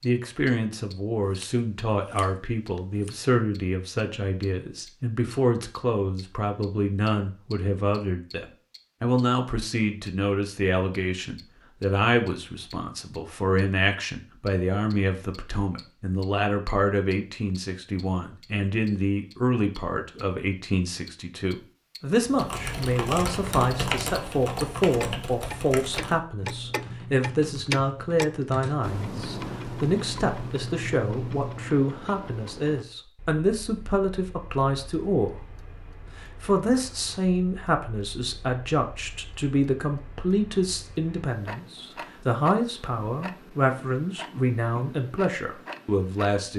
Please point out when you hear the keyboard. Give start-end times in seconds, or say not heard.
22.2-31.7.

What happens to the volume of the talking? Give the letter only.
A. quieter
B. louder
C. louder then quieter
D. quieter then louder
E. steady
E.